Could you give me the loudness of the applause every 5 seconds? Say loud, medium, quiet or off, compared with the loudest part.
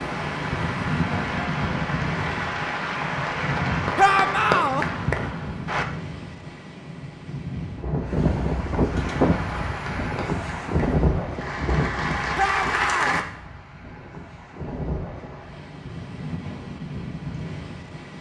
loud, loud, loud, off.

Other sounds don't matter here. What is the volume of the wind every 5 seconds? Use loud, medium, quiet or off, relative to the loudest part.
loud, loud, loud, medium.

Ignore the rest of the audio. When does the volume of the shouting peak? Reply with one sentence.
The loudest moment of the shouting is at 4 seconds.